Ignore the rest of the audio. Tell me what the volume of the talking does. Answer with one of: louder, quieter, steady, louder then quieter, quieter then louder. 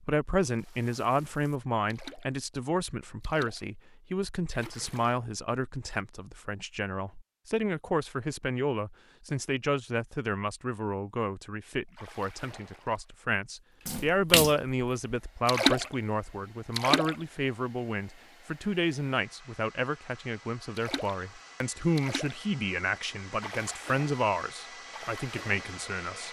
steady.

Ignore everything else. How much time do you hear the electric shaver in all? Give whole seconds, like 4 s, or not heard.
not heard.